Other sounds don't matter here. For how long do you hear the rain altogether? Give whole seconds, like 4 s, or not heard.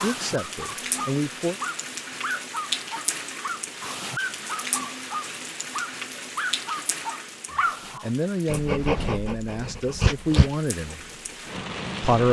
12 s.